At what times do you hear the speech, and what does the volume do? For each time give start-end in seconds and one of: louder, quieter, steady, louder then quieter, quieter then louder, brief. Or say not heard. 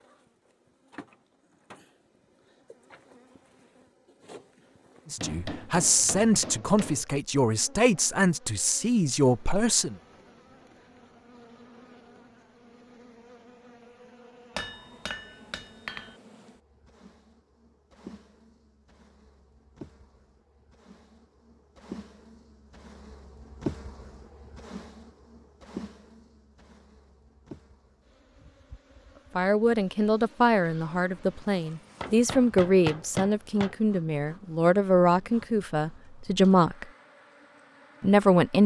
5.1-9.9 steady
29.4-36.9 steady
38.0-38.6 brief.